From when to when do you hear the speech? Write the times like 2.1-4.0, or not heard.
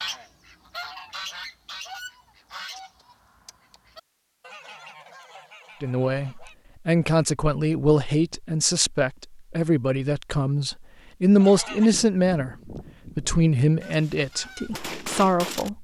5.8-15.7.